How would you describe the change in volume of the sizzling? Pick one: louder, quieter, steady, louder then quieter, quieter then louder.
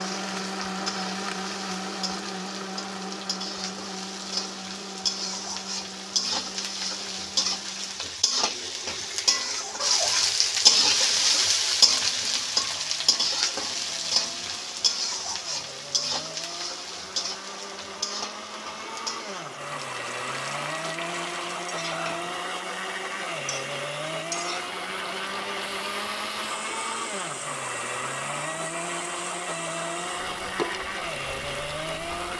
louder then quieter.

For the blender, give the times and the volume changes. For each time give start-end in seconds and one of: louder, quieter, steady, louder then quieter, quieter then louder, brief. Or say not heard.
0.0-32.3 quieter then louder.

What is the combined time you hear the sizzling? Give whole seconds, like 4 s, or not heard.
32 s.